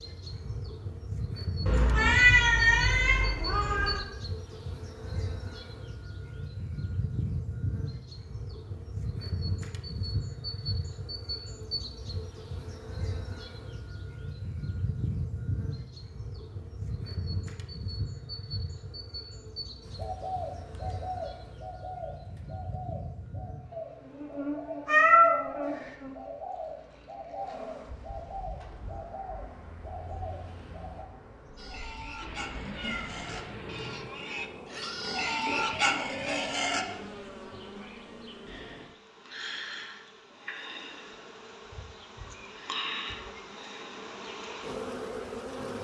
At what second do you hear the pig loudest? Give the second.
36 s.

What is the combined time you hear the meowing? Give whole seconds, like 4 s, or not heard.
5 s.